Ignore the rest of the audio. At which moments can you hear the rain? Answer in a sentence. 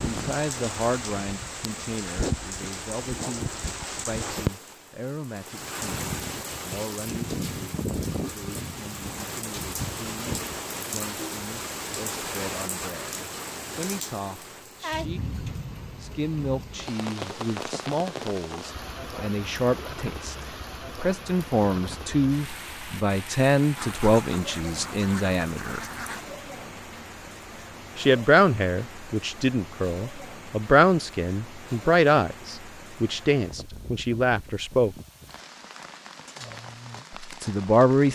The rain can be heard from 0.0 to 38.0 s.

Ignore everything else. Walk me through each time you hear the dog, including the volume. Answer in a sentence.
You can't hear the dog here.